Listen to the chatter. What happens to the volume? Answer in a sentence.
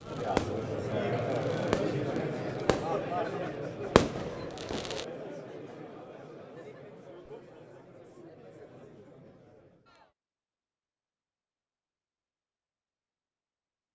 The volume of the chatter goes down.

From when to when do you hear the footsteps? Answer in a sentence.
The footsteps can't be heard in this clip.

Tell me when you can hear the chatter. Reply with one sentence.
You can hear the chatter from 0.0 to 10.1 s.